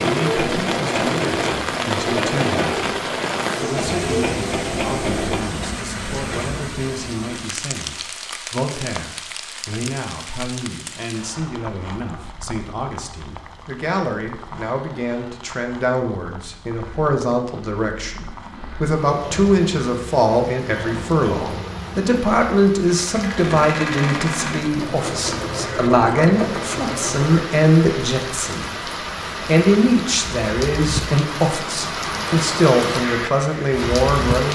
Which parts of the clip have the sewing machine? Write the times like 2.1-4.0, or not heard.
0.0-5.6, 16.6-27.4.